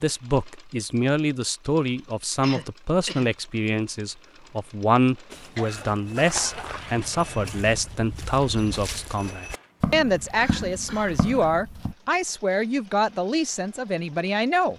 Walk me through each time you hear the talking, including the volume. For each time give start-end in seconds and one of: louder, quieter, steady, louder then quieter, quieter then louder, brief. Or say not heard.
0.0-14.7 steady.